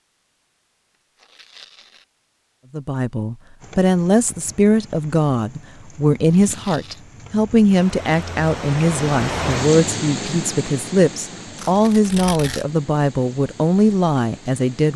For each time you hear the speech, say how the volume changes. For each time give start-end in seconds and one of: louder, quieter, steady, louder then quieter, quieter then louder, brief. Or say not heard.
2.7-14.9 steady.